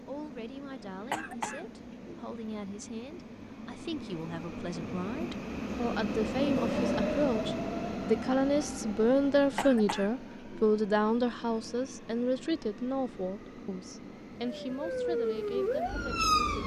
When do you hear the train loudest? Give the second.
7 s.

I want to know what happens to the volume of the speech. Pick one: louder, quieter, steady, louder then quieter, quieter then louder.
louder then quieter.